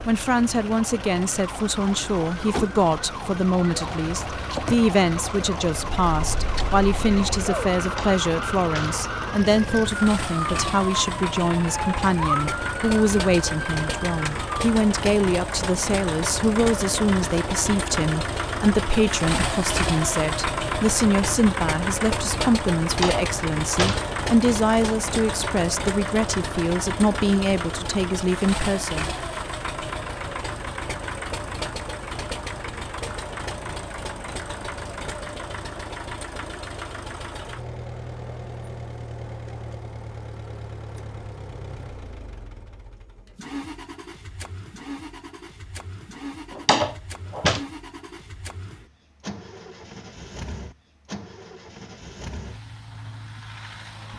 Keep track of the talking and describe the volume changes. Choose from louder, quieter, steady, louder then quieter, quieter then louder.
steady.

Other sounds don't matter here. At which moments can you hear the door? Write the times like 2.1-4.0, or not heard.
7.8-9.1, 22.9-24.1, 46.5-47.6.